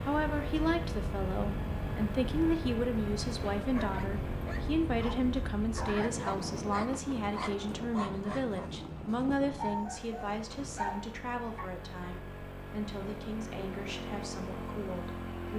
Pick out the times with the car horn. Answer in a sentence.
You can't hear the car horn here.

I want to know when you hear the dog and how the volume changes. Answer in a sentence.
You can hear the dog from 3.5 to 11.7 s, getting louder.